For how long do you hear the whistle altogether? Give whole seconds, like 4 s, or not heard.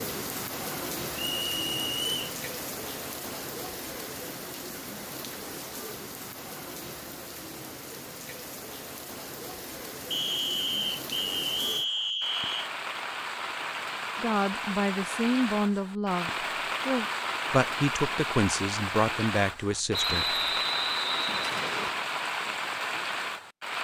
6 s.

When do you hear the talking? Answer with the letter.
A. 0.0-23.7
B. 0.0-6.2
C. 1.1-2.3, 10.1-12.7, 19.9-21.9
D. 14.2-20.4
D.